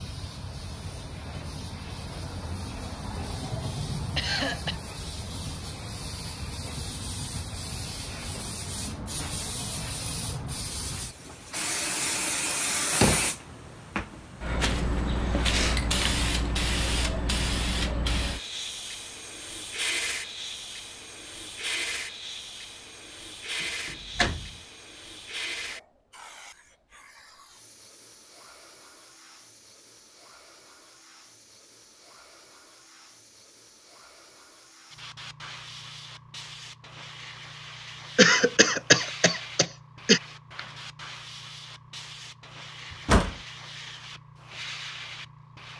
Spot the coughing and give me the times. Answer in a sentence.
The coughing can be heard from 4.2 to 4.8 s and from 38.1 to 40.2 s.